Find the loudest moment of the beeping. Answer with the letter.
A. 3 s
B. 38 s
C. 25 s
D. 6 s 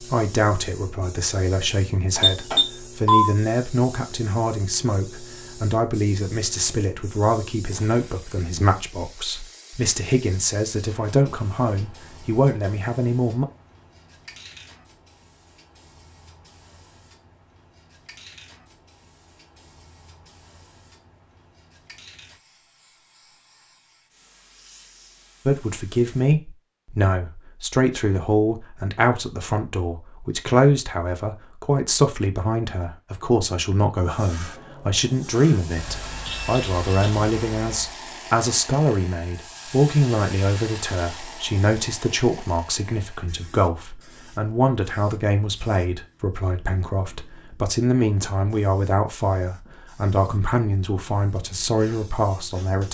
A.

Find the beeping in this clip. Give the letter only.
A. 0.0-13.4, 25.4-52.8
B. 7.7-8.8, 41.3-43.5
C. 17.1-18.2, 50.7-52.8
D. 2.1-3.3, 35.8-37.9
D.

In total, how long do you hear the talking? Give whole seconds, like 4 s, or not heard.
41 s.